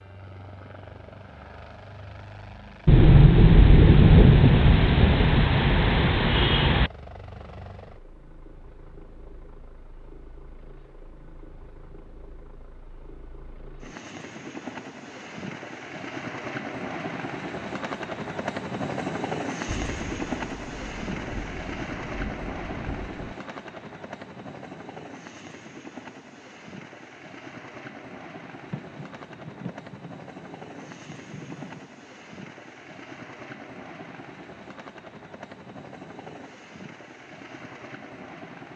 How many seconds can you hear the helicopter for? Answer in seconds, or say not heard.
39 s.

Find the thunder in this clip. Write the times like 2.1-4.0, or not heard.
2.9-6.9, 19.6-23.4, 28.6-31.9.